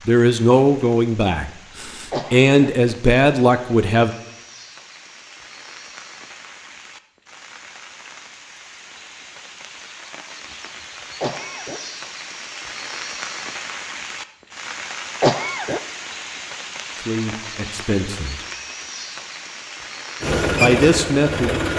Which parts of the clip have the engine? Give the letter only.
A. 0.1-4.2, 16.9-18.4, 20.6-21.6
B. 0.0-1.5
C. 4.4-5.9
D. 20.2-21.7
D.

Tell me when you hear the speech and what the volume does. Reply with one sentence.
The speech can be heard from 0.1 to 4.2 s, getting quieter then louder; briefly from 16.9 to 18.4 s; and briefly from 20.6 to 21.6 s.